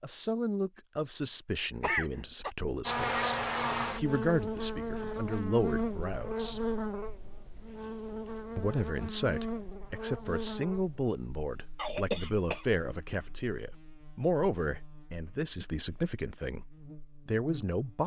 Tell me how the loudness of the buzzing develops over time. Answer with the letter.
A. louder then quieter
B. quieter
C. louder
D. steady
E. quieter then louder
B.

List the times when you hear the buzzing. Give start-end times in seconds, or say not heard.
2.9-18.0.